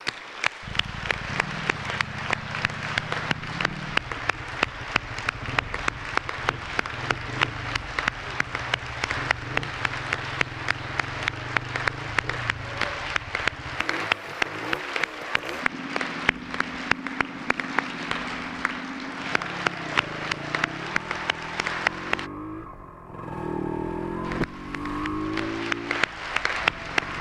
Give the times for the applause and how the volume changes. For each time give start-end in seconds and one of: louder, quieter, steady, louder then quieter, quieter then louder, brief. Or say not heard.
0.0-22.3 steady
24.2-27.1 brief.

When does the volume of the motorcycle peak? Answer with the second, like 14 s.
24 s.